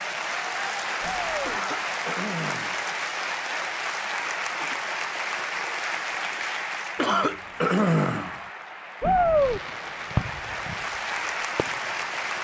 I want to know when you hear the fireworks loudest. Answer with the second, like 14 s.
10 s.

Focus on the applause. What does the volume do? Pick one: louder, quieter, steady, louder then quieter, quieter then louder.
quieter then louder.